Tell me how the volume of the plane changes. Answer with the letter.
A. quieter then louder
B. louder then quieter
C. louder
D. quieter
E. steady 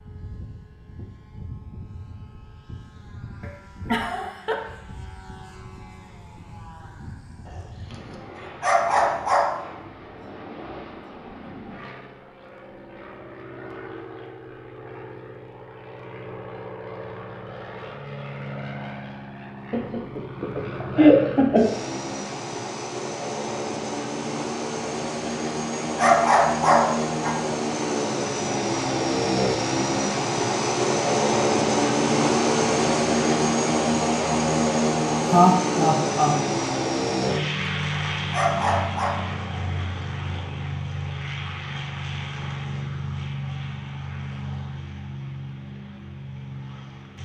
B.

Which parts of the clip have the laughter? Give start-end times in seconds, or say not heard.
3.4-4.5, 19.7-21.7, 35.2-36.4.